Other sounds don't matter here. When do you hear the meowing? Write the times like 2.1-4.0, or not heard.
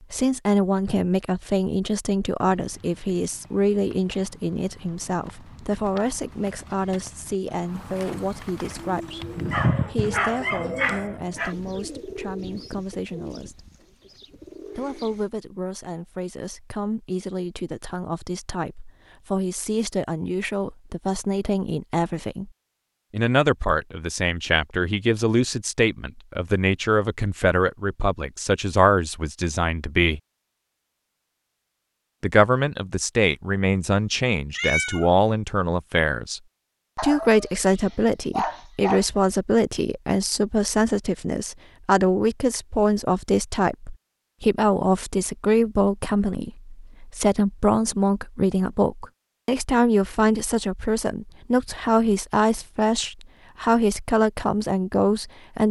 9.4-10.2, 34.5-35.1.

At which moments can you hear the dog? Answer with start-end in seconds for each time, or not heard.
9.5-11.6, 37.0-39.0.